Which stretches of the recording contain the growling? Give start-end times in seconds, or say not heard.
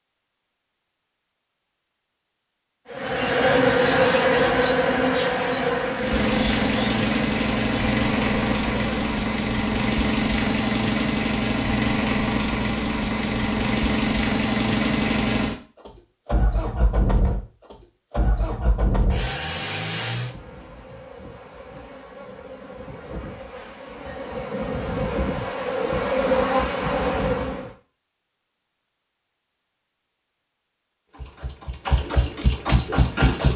not heard.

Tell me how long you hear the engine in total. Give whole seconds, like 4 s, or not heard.
17 s.